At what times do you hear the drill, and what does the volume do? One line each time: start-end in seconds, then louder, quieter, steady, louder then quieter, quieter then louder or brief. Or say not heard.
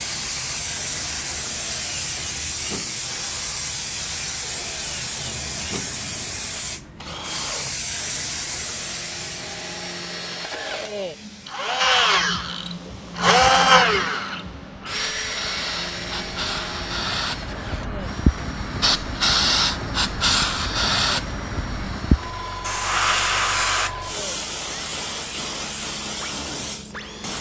0.0-27.3 louder then quieter.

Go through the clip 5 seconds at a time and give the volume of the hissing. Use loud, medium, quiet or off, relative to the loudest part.
medium, medium, quiet, loud, loud, medium.